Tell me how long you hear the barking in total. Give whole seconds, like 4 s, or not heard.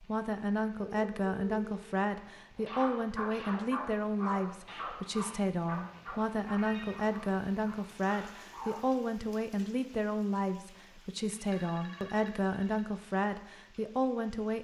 6 s.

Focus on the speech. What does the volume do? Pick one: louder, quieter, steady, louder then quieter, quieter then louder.
steady.